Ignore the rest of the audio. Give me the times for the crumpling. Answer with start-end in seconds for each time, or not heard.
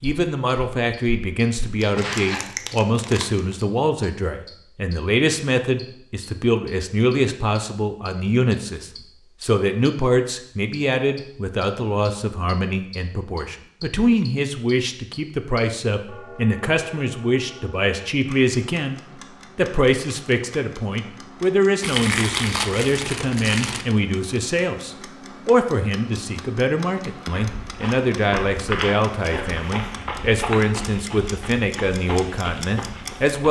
1.9-3.6, 21.8-23.9.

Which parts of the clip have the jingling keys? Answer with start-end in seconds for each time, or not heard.
not heard.